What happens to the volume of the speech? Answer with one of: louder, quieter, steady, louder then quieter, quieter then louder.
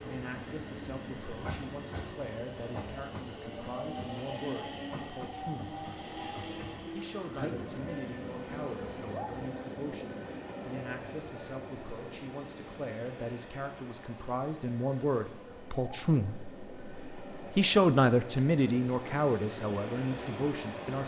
louder.